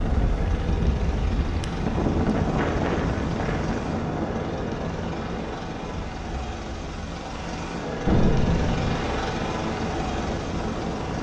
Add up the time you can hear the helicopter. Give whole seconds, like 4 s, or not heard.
11 s.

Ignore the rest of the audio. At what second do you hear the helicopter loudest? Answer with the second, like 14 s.
9 s.